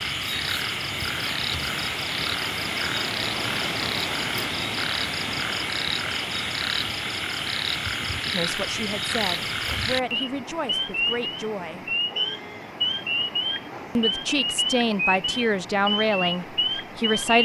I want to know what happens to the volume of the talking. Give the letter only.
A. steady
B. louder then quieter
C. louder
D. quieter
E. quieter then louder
C.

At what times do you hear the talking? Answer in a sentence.
The talking can be heard from 8.3 to 11.8 s and from 13.9 to 17.3 s.